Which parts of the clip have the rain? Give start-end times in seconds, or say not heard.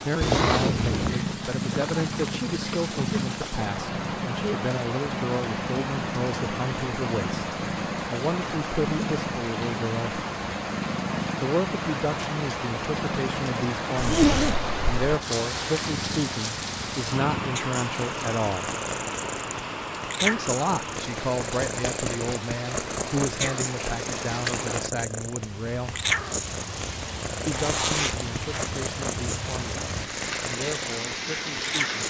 0.0-32.0.